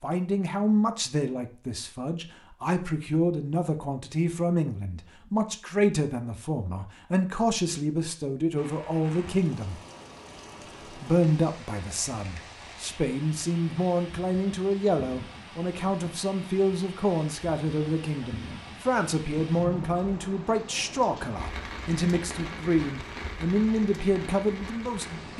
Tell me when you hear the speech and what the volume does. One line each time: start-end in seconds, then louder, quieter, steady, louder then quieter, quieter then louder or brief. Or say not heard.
0.0-9.8 steady
10.8-25.3 steady.